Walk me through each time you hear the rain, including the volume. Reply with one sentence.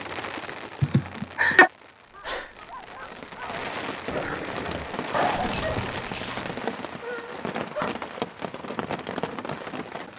You can hear the rain from 0.0 to 10.1 s, getting louder.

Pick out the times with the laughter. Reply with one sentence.
You can hear the laughter from 0.8 to 1.7 s and from 5.1 to 6.0 s.